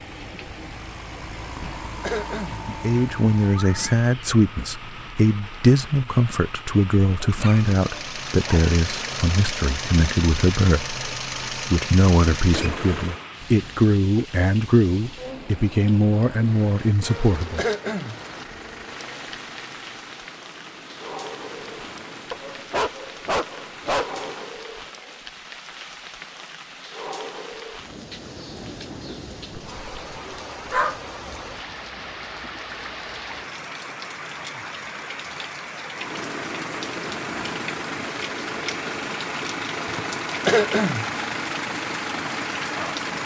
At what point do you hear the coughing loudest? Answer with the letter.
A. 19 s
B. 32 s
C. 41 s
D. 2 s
C.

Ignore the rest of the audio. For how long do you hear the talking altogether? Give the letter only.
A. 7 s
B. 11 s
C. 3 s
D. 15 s
D.